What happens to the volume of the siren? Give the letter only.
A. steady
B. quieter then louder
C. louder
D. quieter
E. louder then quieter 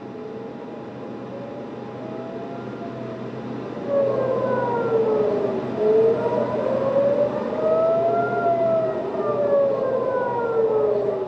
C.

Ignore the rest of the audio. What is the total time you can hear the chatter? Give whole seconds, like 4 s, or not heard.
not heard.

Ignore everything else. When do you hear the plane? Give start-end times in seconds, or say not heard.
0.0-11.2.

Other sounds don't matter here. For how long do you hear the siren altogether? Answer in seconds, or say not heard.
11 s.